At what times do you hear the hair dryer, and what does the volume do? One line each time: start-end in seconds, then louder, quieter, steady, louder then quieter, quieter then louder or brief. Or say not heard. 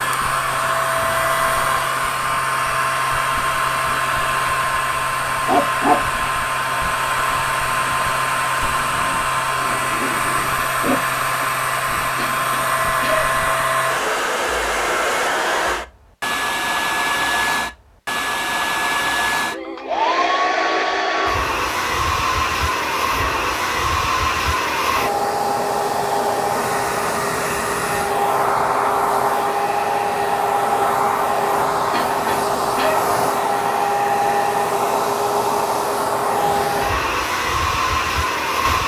0.0-38.8 steady.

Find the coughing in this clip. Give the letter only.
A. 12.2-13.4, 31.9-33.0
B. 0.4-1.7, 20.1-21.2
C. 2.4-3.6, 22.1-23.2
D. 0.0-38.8
A.